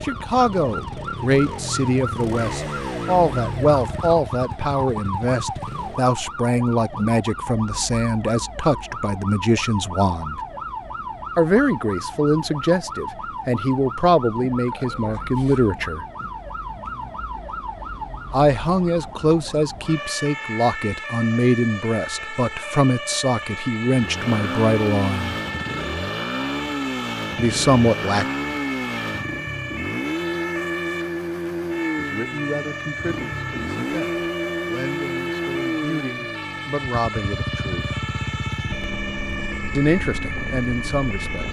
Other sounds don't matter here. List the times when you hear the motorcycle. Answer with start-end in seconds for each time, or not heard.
0.0-6.0, 23.9-41.4.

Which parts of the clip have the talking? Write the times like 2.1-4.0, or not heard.
0.0-10.4, 11.3-16.1, 18.3-25.4, 27.4-28.2, 31.9-37.9, 39.8-41.4.